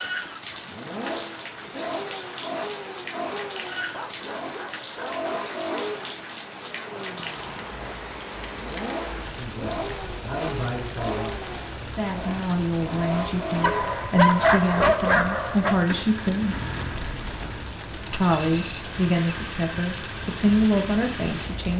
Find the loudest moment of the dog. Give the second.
14 s.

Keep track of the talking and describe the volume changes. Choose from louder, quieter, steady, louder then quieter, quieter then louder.
louder.